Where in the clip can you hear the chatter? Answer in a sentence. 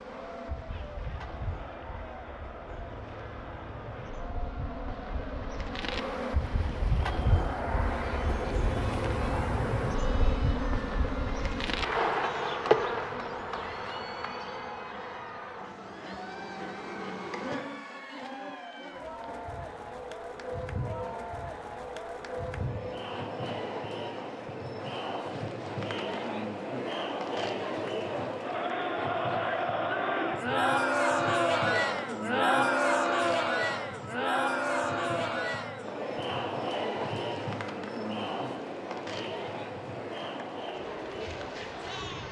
You can hear the chatter from 0.0 to 42.2 s.